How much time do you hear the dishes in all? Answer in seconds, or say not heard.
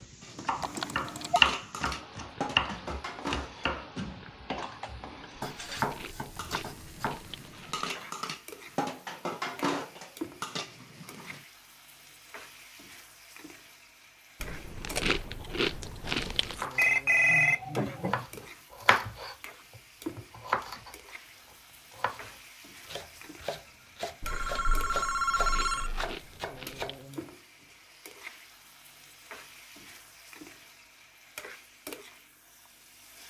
11 s.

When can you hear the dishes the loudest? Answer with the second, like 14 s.
10 s.